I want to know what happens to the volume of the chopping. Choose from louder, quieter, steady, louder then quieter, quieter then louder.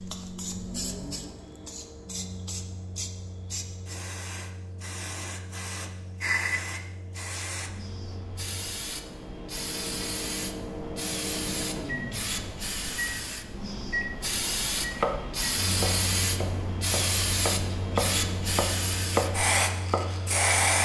louder.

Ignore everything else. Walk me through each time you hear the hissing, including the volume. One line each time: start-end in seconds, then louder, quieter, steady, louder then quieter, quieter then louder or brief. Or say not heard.
0.0-20.7 louder.